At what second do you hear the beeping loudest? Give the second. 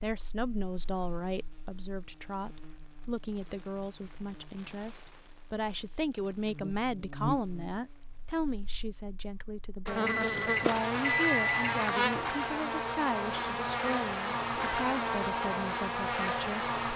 11 s.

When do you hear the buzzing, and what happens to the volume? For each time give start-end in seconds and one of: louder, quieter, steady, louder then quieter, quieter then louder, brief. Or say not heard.
0.1-16.9 louder.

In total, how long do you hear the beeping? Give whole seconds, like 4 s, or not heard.
2 s.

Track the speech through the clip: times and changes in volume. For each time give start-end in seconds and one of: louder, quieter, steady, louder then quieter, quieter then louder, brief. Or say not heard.
0.0-16.6 steady.